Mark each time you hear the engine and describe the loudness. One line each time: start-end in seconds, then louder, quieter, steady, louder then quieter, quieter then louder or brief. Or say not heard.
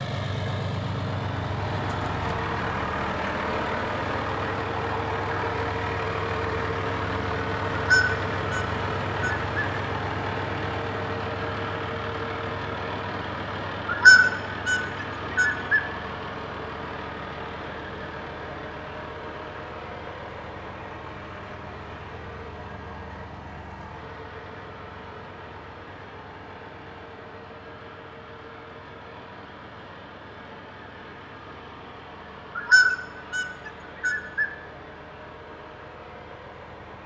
0.0-37.0 quieter.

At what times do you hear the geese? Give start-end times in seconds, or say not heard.
7.7-9.7, 13.8-15.8, 32.5-34.5.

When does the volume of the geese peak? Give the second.
14 s.